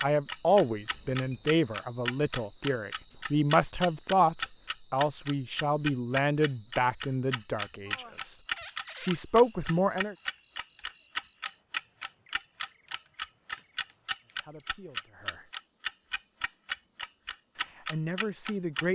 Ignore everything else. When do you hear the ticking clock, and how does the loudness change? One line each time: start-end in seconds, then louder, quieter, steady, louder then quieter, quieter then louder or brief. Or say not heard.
0.0-18.9 steady.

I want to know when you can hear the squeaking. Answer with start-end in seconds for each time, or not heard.
8.6-9.2.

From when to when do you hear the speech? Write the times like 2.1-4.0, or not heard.
0.0-8.3, 9.0-10.2, 14.3-15.4, 17.8-18.9.